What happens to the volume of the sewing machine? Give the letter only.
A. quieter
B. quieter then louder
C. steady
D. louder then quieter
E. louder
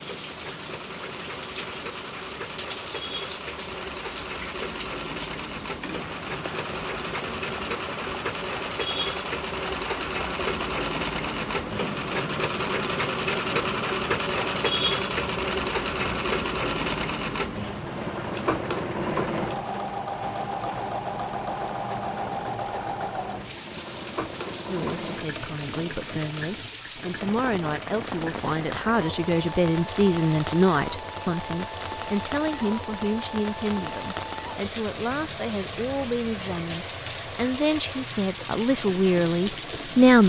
D.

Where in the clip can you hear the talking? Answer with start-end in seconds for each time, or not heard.
24.6-40.2.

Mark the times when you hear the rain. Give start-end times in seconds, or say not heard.
0.0-40.2.